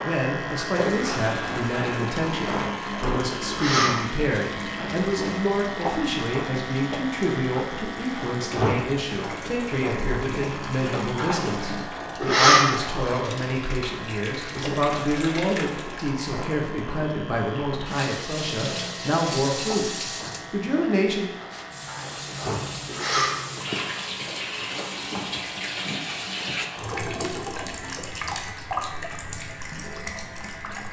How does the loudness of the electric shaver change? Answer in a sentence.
The loudness of the electric shaver goes down.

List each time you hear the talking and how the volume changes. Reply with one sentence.
The talking can be heard from 0.0 to 21.3 s, at a steady volume.